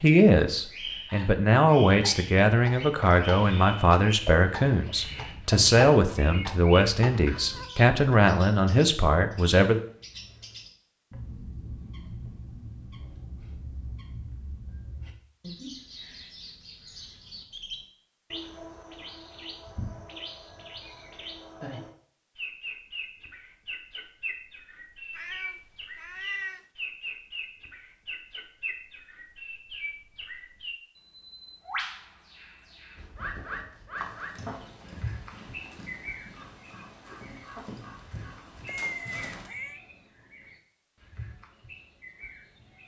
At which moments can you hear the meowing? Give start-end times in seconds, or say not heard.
7.3-7.8, 25.1-26.6, 38.6-39.8.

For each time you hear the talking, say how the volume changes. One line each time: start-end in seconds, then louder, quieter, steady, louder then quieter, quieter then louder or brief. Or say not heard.
0.0-9.8 steady.